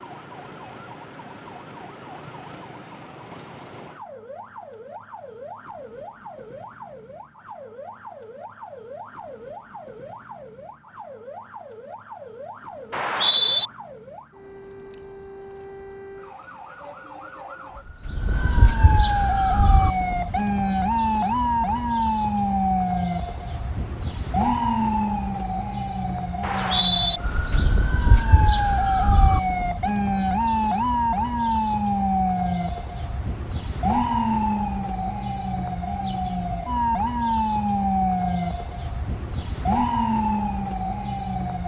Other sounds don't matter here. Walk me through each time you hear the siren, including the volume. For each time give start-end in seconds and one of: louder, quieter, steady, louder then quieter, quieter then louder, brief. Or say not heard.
0.0-41.6 louder.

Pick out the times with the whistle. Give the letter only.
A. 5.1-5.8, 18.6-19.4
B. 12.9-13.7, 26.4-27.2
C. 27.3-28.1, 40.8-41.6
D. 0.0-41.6
B.